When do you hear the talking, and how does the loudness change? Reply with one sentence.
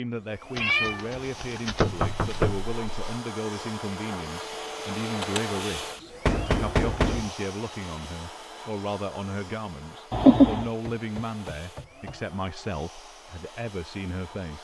You can hear the talking from 0.0 to 14.6 s, at a steady volume.